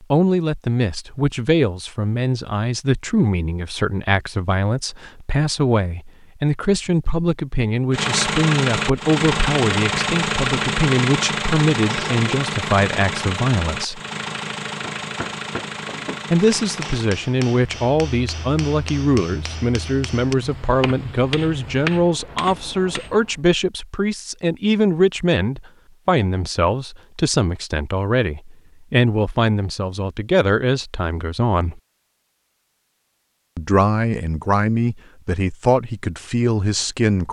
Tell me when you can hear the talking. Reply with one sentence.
The talking can be heard from 0.0 to 14.0 s, from 16.3 to 31.8 s and from 33.5 to 37.2 s.